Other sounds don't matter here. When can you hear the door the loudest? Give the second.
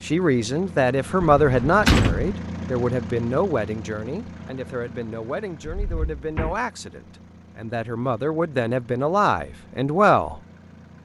2 s.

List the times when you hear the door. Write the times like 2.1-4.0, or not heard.
1.2-2.4, 5.8-6.6.